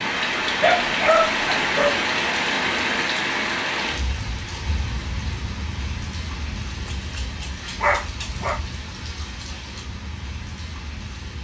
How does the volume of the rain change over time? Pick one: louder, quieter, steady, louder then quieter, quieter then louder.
quieter.